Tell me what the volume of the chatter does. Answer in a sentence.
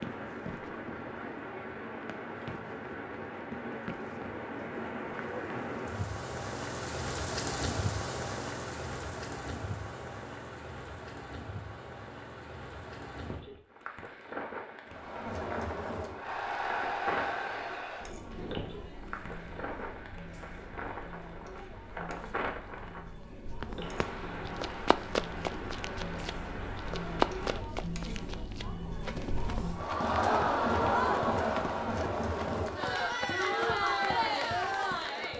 The loudness of the chatter goes down, then up.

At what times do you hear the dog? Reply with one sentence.
You can't hear the dog here.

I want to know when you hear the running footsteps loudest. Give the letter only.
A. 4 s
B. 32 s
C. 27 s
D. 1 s
C.